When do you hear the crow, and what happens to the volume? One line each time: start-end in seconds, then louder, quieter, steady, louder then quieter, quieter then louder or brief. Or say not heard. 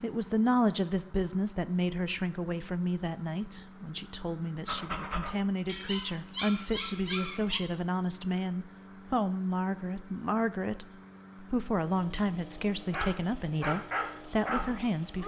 not heard.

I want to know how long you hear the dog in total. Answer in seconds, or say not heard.
5 s.